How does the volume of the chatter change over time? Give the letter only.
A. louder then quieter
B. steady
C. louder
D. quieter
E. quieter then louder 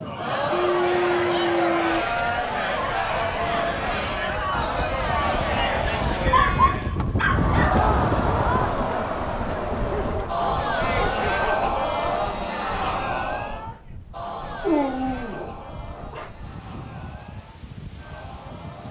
D.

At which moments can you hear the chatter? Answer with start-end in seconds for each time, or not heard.
0.0-18.8.